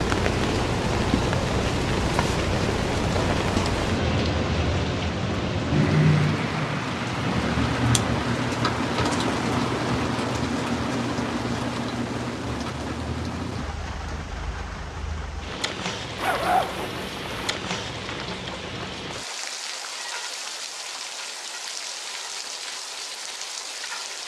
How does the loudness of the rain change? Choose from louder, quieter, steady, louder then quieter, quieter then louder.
quieter.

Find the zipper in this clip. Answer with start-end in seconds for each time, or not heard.
16.1-17.6.